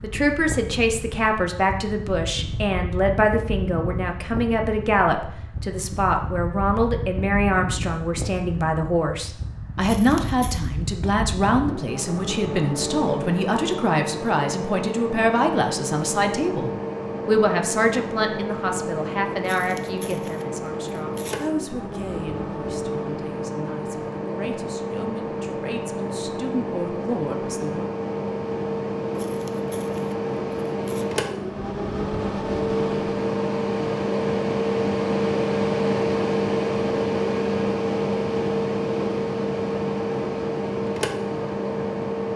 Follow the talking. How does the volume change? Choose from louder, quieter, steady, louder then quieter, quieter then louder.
quieter.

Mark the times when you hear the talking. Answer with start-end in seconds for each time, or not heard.
0.0-27.9.